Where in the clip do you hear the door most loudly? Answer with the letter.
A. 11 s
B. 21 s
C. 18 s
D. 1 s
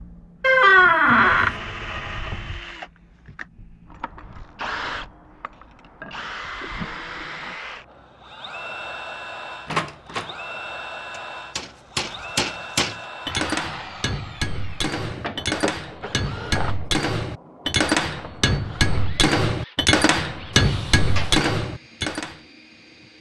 D.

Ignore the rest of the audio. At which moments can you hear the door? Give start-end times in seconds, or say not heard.
0.4-1.6, 9.7-10.3, 20.5-21.5.